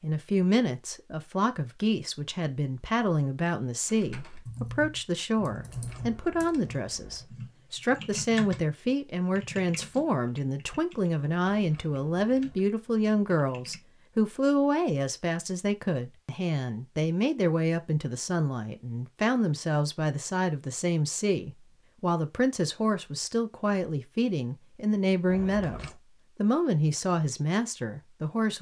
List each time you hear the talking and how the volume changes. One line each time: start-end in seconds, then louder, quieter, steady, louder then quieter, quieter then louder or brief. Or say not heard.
0.0-28.5 steady.